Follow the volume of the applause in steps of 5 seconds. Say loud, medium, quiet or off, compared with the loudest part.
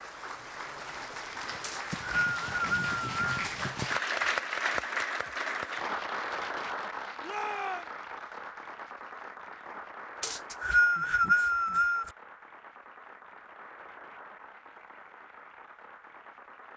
loud, loud, quiet, quiet.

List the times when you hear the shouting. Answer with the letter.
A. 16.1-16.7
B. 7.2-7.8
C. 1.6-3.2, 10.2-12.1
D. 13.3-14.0
B.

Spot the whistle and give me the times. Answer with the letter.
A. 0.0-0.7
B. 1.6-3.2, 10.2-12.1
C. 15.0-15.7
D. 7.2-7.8
B.